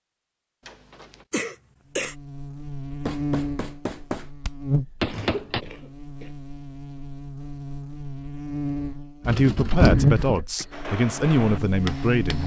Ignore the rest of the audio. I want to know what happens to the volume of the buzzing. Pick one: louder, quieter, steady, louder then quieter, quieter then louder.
quieter then louder.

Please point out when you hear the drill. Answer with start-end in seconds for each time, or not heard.
not heard.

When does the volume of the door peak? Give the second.
10 s.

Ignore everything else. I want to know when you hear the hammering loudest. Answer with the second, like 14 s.
5 s.